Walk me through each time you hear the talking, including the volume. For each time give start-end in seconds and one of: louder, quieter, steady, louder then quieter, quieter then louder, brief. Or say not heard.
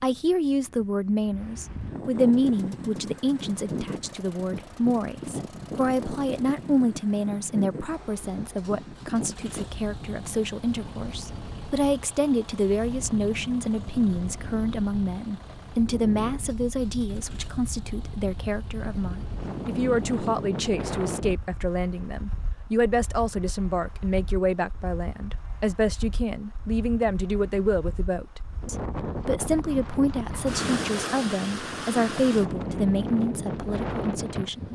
0.0-34.6 steady.